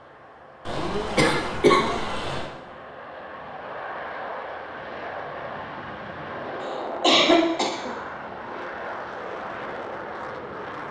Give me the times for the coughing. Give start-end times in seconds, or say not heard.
0.7-2.5, 6.6-7.9.